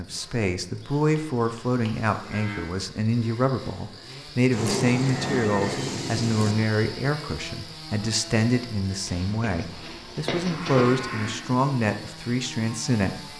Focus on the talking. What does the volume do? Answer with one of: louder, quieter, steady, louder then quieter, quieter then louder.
steady.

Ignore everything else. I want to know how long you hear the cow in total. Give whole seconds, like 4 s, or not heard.
6 s.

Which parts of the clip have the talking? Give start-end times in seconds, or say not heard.
0.0-13.2.